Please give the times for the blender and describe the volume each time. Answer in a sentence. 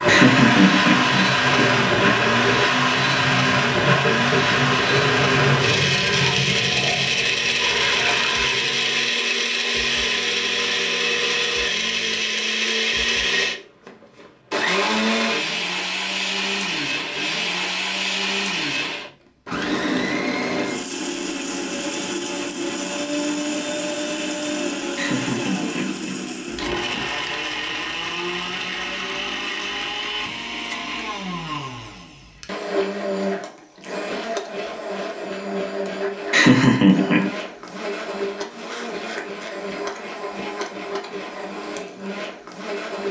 The blender can be heard from 0.0 to 43.0 s, getting quieter.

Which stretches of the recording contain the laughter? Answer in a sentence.
You can hear the laughter from 0.1 to 2.1 s, from 24.9 to 27.1 s and from 36.3 to 37.3 s.